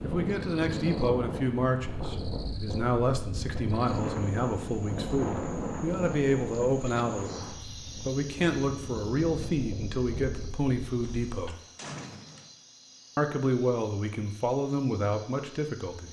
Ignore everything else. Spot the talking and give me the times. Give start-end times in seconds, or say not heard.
0.0-11.6, 13.2-16.0.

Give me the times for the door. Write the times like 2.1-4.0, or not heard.
11.0-12.5.